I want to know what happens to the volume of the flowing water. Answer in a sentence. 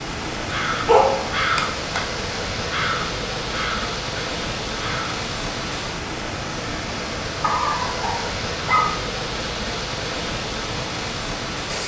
The loudness of the flowing water stays about the same.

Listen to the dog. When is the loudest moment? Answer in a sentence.
The loudest moment of the dog is at 1 second.